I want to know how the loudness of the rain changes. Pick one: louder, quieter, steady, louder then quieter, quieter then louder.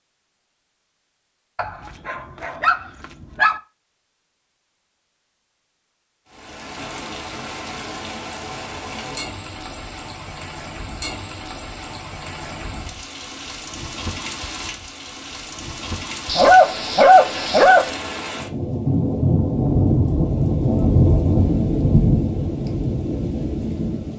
louder.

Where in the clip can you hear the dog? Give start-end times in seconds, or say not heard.
1.6-3.6, 16.2-17.9.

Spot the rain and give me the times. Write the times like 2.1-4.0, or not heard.
6.3-24.1.